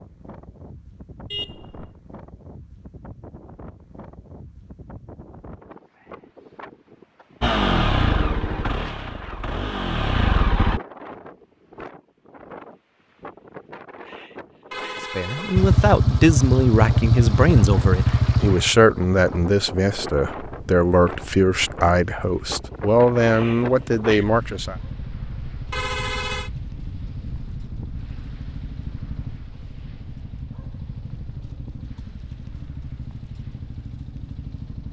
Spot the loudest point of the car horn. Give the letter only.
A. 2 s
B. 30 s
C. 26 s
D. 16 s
C.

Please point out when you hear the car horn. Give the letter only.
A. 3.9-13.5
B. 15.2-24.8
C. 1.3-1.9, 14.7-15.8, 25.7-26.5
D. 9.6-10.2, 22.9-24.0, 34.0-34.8
C.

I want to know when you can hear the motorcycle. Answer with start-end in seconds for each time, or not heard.
7.4-10.8, 15.6-34.8.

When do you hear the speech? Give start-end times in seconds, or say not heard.
15.2-24.8.